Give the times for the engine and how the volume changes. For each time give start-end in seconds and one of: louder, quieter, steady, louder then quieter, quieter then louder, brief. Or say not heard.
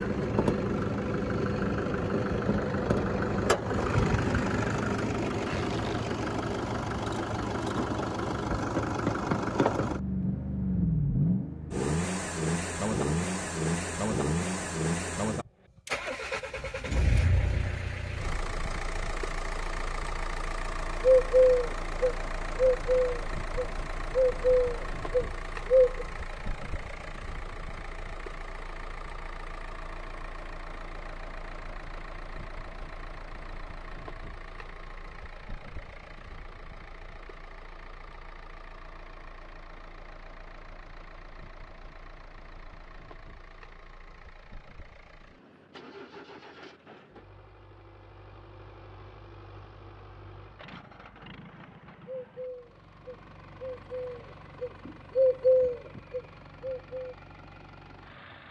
0.0-58.4 quieter.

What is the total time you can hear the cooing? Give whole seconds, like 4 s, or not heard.
10 s.